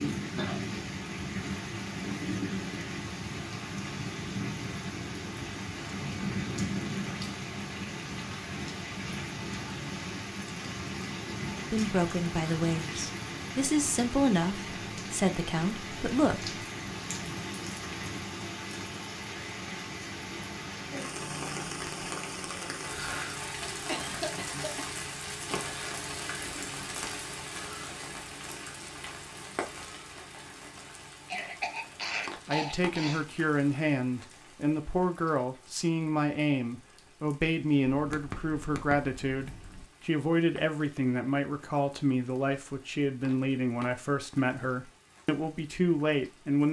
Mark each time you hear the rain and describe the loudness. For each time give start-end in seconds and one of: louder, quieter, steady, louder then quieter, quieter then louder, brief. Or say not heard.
0.0-46.6 quieter.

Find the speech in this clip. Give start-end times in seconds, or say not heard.
11.7-16.6, 32.5-46.6.